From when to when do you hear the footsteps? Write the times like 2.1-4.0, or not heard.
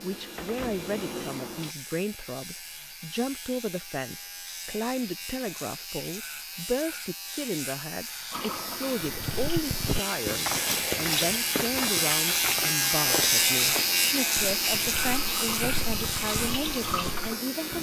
9.0-17.4.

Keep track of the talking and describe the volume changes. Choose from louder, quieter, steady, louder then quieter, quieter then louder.
steady.